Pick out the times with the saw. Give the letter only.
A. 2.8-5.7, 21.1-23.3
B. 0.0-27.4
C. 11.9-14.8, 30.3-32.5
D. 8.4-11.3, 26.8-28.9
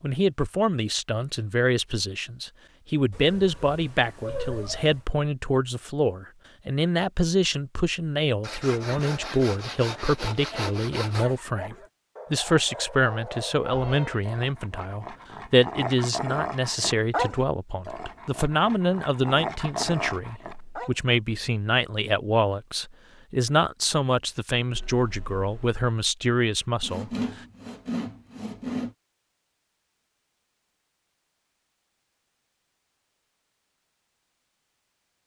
D.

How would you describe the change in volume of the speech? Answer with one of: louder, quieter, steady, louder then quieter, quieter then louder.
steady.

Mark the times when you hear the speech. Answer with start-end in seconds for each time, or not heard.
0.0-27.4.